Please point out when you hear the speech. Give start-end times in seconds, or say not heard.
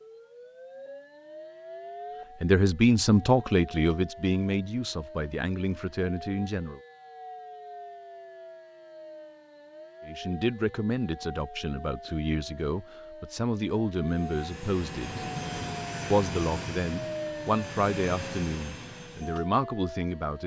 2.4-6.8, 10.1-15.2, 16.1-20.4.